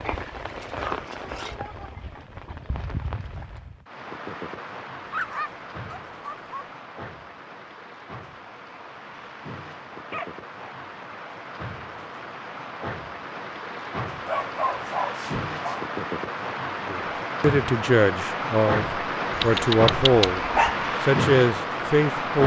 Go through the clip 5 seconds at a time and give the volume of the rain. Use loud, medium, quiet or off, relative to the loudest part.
medium, quiet, medium, loud, loud.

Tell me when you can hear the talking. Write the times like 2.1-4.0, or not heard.
16.9-22.4.